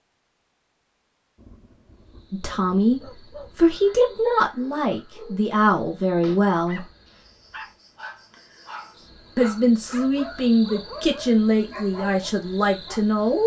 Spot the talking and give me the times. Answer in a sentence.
The talking can be heard from 2.3 to 6.9 s and from 9.3 to 13.4 s.